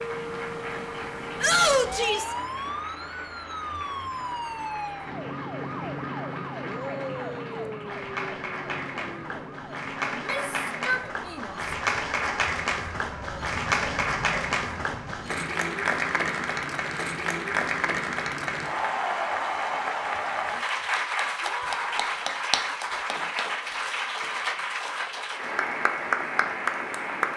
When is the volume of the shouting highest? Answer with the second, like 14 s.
2 s.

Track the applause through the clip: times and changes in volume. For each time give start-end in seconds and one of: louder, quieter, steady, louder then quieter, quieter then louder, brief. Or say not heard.
0.0-27.3 louder.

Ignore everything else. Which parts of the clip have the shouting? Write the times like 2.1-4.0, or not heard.
1.4-2.4, 10.1-11.6, 21.4-22.1.